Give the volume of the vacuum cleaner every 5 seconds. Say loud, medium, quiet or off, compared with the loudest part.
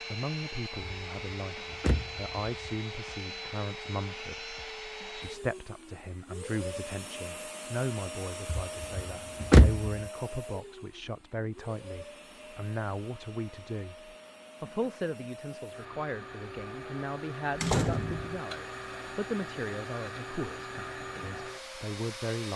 loud, loud, medium, loud, loud.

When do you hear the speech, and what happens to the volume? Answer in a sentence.
The speech can be heard from 0.1 to 22.5 s, at a steady volume.